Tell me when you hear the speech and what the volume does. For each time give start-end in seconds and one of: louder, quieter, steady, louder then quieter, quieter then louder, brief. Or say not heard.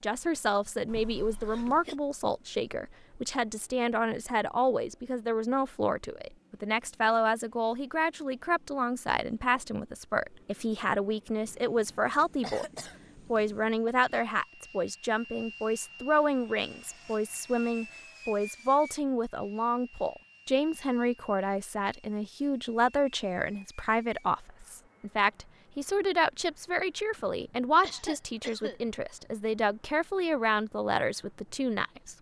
0.0-32.1 steady.